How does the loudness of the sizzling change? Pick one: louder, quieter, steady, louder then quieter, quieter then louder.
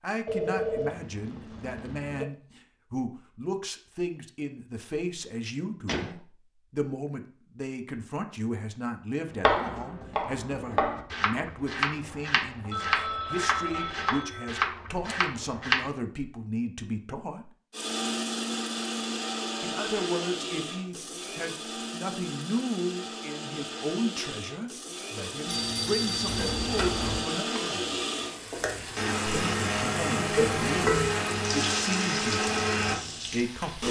louder then quieter.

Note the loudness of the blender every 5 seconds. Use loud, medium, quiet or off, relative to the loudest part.
off, off, off, loud, medium, loud, loud.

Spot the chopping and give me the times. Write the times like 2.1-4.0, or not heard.
9.3-15.9.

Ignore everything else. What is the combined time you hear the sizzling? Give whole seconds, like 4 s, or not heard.
7 s.